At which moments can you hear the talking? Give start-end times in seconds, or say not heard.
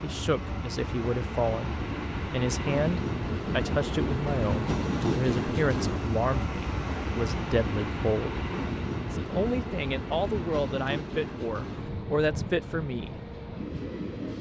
0.0-8.4, 9.1-13.2.